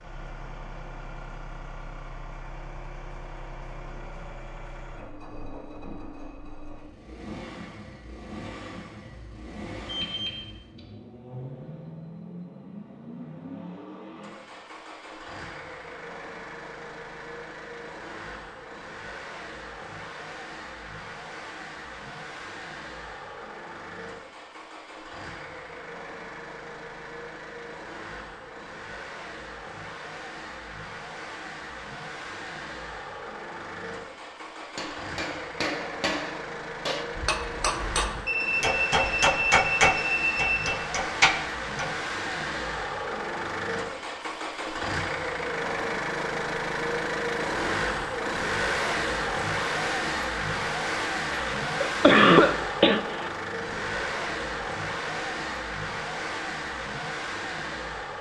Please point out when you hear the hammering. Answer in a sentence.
You can hear the hammering from 34.6 to 42.0 s.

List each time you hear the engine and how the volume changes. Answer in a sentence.
The engine can be heard from 0.0 to 58.1 s, getting louder.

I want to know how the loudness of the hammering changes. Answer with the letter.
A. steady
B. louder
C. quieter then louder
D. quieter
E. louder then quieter
B.